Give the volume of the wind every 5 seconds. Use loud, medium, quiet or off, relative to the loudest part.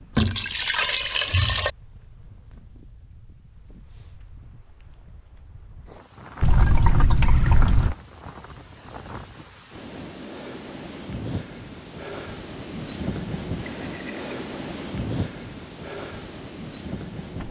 quiet, medium, loud, loud.